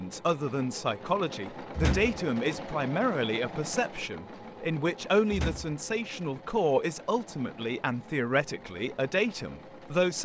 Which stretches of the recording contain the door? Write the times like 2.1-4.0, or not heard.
1.8-2.6, 5.3-6.2.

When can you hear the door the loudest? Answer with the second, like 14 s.
2 s.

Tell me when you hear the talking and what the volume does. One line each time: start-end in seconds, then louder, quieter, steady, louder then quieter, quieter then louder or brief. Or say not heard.
0.0-10.2 steady.